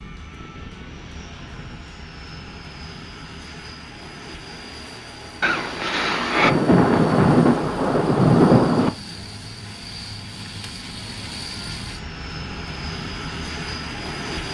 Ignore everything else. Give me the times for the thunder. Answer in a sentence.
The thunder can be heard from 5.4 to 8.9 s.